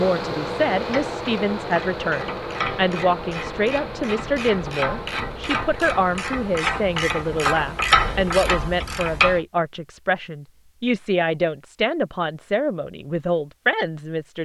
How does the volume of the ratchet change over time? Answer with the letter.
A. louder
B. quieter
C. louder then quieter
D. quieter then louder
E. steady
A.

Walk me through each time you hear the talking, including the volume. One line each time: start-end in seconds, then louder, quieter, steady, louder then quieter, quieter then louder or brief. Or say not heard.
0.0-14.3 steady.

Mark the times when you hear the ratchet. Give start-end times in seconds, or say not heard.
0.7-9.4.